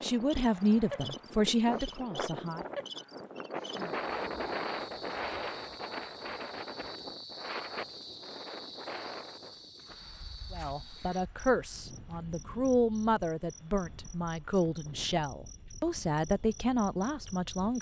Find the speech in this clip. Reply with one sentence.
The speech can be heard from 0.0 to 2.6 s and from 10.5 to 17.7 s.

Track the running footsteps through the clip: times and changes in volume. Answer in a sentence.
You can't hear the running footsteps here.